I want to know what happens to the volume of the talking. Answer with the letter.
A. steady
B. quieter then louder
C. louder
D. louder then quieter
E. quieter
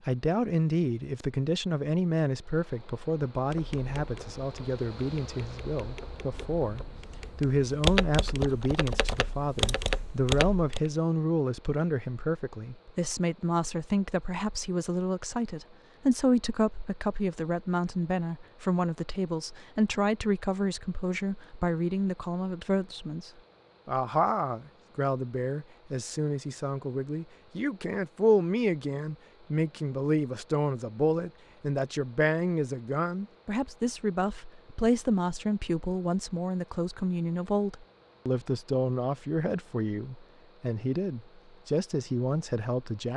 A.